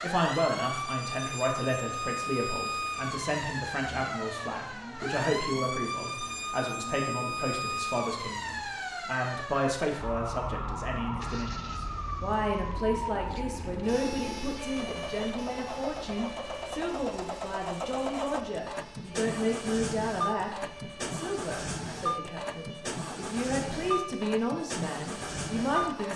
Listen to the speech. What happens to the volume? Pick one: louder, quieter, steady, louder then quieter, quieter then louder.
steady.